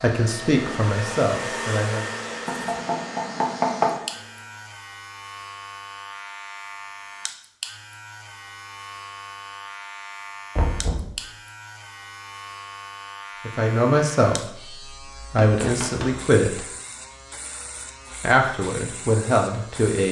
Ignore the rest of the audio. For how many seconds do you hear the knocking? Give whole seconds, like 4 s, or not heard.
3 s.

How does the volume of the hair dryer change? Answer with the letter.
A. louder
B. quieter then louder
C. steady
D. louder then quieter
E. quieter
E.